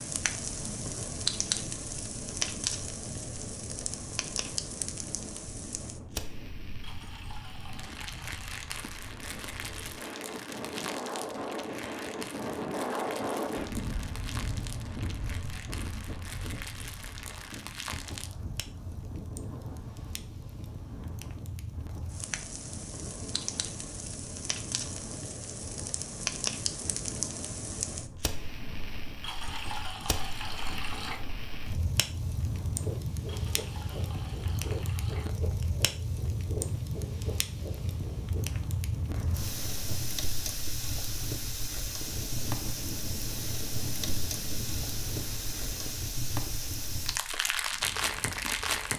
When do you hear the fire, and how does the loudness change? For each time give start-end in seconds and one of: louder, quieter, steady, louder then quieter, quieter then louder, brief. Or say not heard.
0.0-48.9 quieter then louder.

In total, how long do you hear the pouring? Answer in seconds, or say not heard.
6 s.